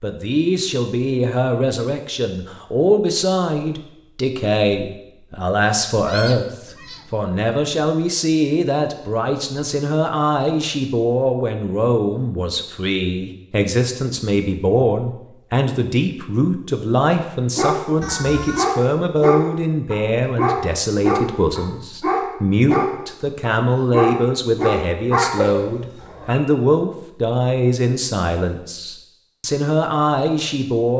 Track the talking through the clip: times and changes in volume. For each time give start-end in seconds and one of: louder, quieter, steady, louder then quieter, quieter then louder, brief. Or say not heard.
0.0-30.9 steady.